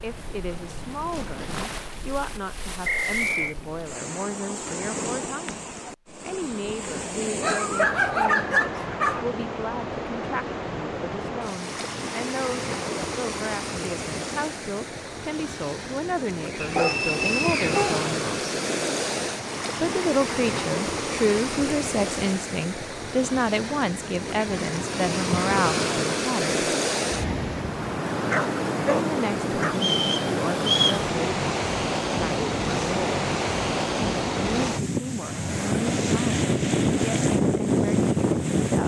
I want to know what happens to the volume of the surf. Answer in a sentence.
The loudness of the surf goes up.